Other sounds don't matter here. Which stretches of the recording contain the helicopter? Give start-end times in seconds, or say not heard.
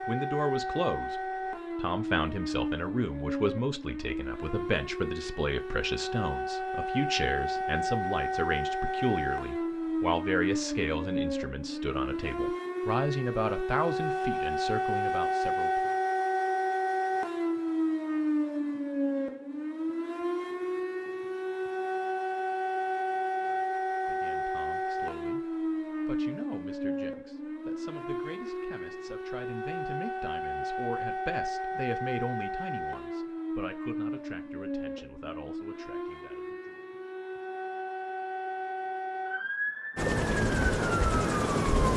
40.0-41.9.